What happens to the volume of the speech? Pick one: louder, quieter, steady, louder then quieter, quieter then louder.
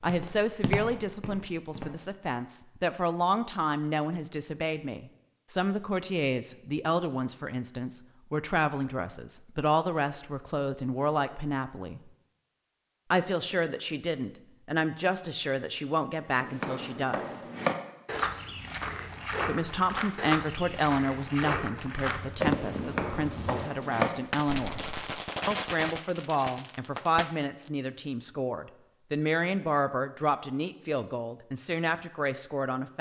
steady.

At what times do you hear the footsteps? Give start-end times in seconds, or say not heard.
0.0-2.1, 16.3-25.2.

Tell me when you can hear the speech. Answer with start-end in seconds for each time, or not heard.
0.0-12.0, 13.1-17.4, 19.4-24.8, 25.4-32.9.